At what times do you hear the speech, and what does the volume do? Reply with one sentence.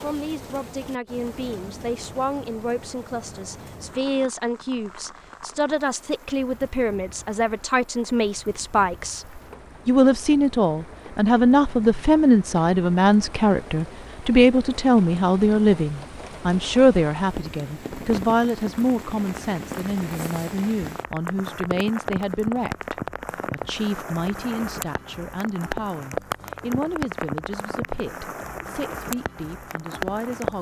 You can hear the speech from 0.0 to 30.5 s, getting louder then quieter.